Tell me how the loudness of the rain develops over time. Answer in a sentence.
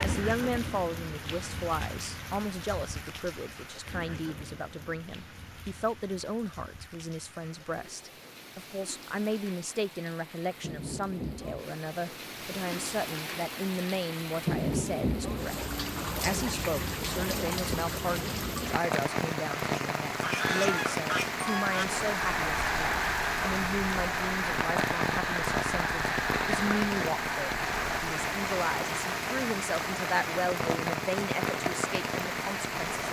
The loudness of the rain goes up.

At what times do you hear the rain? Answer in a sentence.
The rain can be heard from 0.0 to 33.0 s.